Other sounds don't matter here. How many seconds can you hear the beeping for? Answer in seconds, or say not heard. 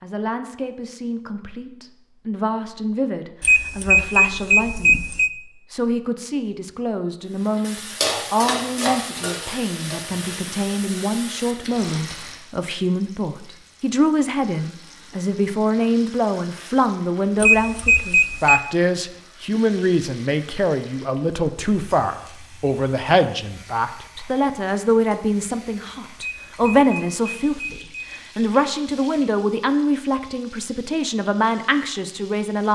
5 s.